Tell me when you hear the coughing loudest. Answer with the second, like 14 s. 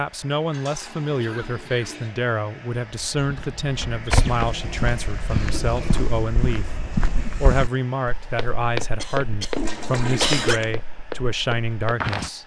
10 s.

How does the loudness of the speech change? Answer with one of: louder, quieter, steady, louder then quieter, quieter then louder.
steady.